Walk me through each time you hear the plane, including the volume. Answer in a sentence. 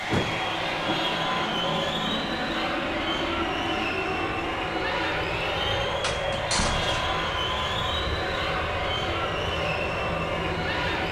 The plane can be heard from 0.0 to 11.0 s, at a steady volume.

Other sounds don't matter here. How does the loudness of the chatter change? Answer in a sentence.
The volume of the chatter stays about the same.